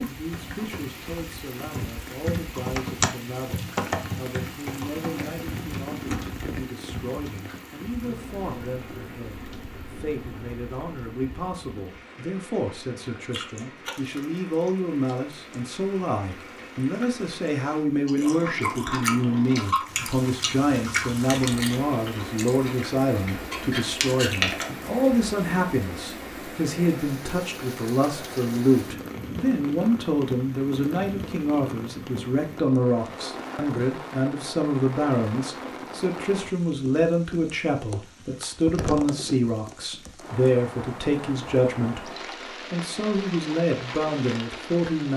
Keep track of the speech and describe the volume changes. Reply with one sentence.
The loudness of the speech goes up.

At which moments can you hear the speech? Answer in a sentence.
The speech can be heard from 0.0 to 45.1 s.